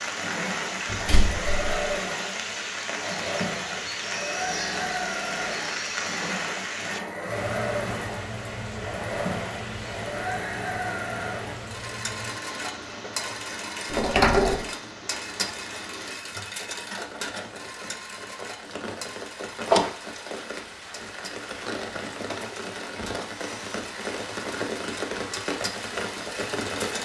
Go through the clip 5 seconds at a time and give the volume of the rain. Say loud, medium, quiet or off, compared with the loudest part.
loud, loud, medium, medium, loud, loud.